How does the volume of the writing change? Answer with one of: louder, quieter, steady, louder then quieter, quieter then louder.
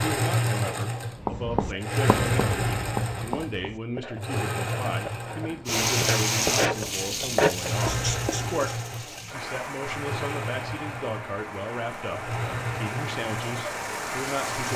quieter then louder.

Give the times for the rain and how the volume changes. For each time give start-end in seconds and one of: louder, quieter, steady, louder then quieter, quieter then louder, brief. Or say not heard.
5.7-14.7 quieter then louder.